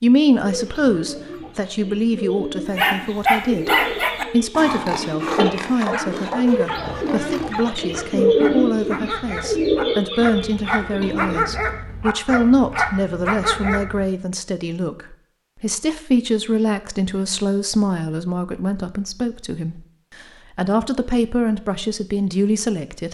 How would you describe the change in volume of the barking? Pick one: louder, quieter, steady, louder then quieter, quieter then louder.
quieter then louder.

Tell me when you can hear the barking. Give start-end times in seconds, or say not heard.
2.7-14.1.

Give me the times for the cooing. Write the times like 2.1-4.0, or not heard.
0.4-11.4.